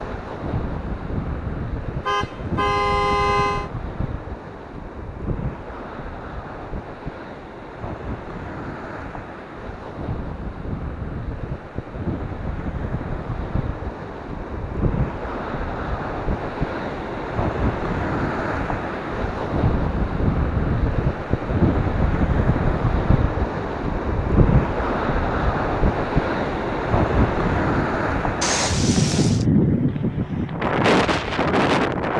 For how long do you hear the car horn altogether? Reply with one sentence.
The car horn can be heard for 3 seconds in total.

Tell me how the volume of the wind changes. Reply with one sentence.
The volume of the wind goes up.